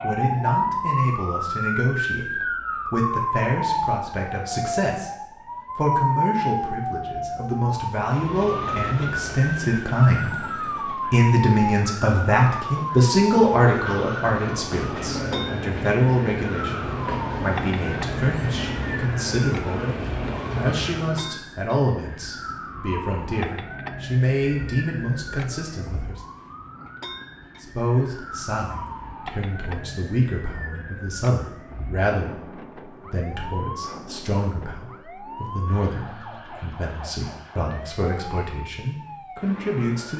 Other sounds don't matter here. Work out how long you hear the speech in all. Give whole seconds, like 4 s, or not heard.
38 s.